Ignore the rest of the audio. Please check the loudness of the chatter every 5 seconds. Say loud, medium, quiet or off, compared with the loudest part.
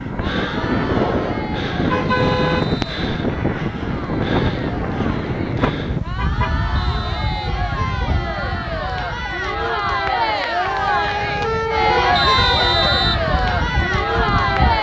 quiet, medium, loud.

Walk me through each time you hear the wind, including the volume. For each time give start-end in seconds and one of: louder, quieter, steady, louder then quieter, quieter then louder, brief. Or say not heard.
0.0-14.7 quieter then louder.